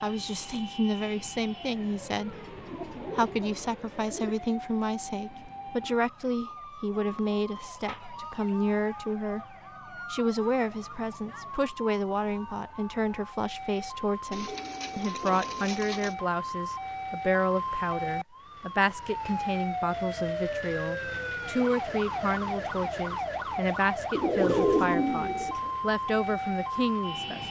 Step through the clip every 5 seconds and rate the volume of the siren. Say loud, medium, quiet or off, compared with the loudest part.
medium, medium, medium, loud, loud, loud.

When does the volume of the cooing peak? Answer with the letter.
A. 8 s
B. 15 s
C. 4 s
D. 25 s
D.